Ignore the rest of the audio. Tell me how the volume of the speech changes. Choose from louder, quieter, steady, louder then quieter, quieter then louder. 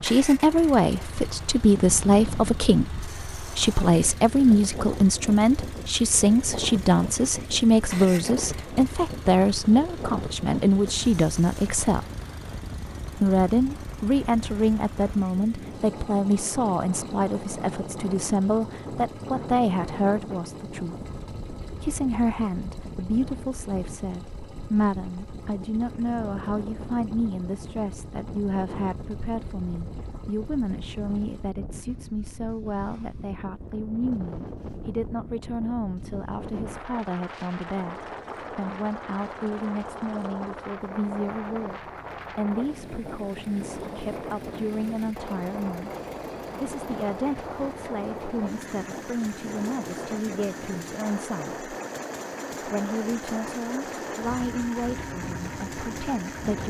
quieter.